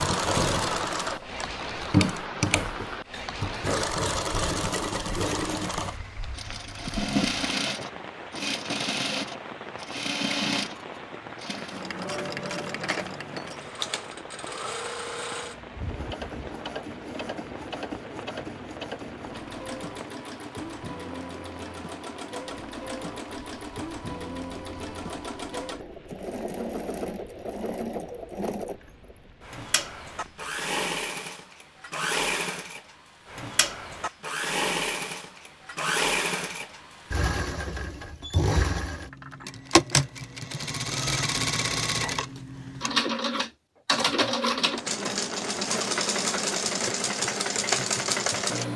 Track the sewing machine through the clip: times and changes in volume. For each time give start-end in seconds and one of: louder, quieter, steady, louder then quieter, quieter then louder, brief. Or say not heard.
0.0-48.7 quieter then louder.